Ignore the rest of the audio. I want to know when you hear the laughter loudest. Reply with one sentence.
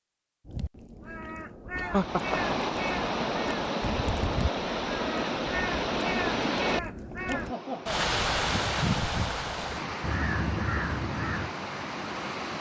The loudest moment of the laughter is at 2 seconds.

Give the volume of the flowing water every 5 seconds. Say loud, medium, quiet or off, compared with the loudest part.
loud, loud, medium.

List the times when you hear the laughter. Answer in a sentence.
The laughter can be heard from 1.8 to 2.4 s and from 7.2 to 8.1 s.